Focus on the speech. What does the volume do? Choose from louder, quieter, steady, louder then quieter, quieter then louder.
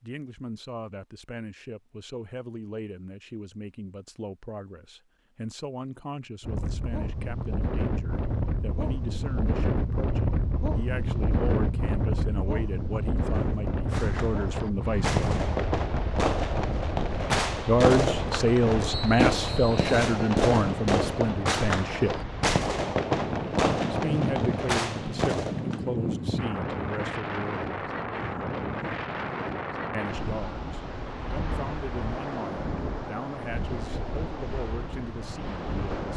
louder then quieter.